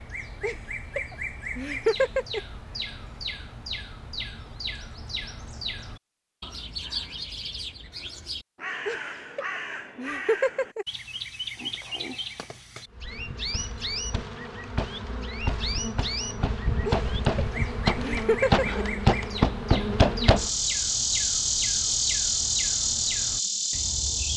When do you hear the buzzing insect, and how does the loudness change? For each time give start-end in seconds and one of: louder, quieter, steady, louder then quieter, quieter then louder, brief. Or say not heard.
12.9-24.3 louder.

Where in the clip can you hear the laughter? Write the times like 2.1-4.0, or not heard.
0.4-2.4, 8.8-10.8, 16.9-18.9.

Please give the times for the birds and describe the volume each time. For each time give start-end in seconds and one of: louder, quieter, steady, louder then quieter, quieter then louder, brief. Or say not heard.
0.0-24.3 steady.